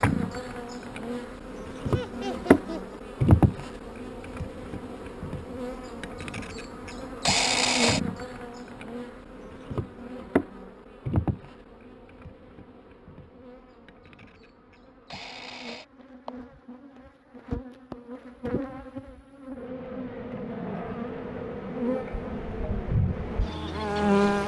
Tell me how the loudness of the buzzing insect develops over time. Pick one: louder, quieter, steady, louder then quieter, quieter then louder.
quieter then louder.